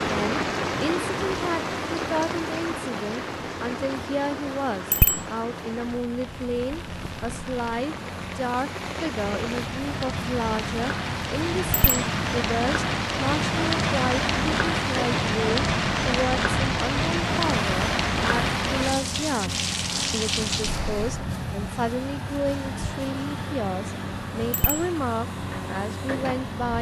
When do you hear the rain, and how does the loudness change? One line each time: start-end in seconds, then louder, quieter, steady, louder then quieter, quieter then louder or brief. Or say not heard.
0.0-21.2 quieter then louder.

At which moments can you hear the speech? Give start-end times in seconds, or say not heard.
0.0-26.7.